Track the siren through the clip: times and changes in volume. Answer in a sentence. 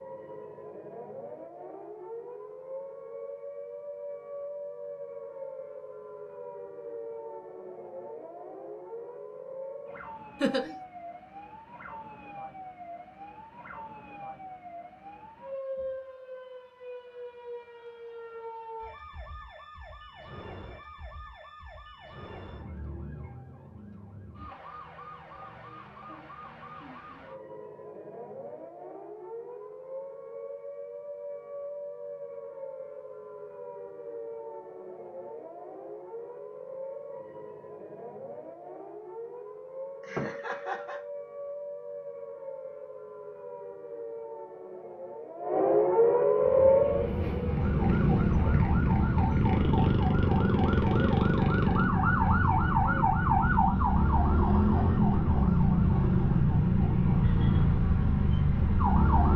You can hear the siren from 0.0 to 59.3 s, getting louder.